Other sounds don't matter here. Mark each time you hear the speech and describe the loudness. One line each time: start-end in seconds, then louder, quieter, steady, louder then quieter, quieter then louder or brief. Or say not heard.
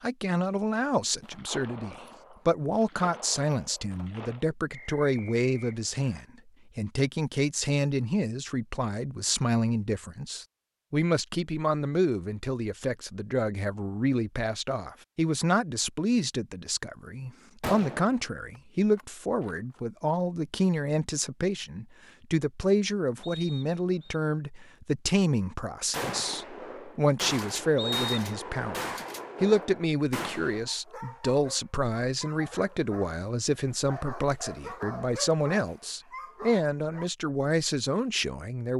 0.0-38.7 steady.